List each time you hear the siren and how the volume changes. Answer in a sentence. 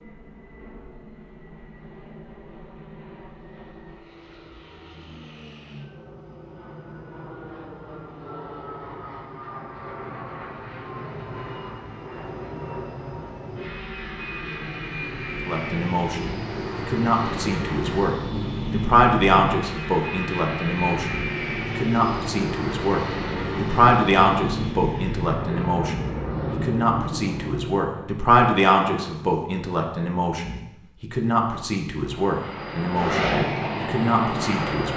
You can't hear the siren here.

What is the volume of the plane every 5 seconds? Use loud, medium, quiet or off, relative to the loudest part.
quiet, quiet, medium, loud, loud, loud, loud.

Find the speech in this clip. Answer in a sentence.
The speech can be heard from 15.4 to 34.9 s.